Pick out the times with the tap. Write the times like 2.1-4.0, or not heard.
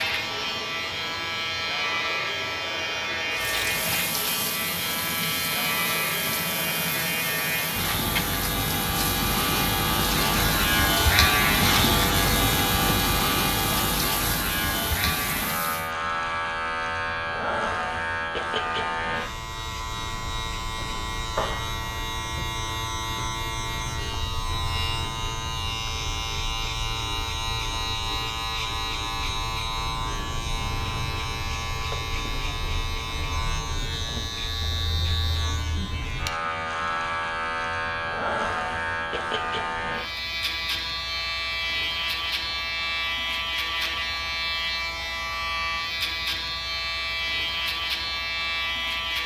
3.3-15.9.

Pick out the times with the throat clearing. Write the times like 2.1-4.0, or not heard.
not heard.